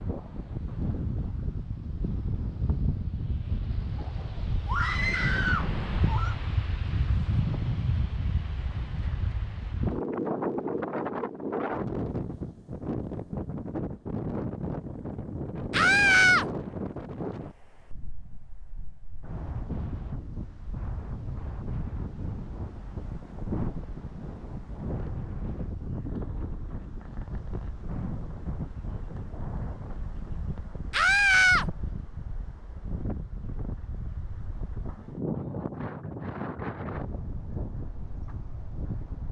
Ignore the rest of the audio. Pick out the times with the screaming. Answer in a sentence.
You can hear the screaming from 4.7 to 6.3 s, from 15.7 to 16.4 s and from 30.9 to 31.6 s.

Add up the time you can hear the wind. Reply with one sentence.
You can hear the wind for 39 seconds altogether.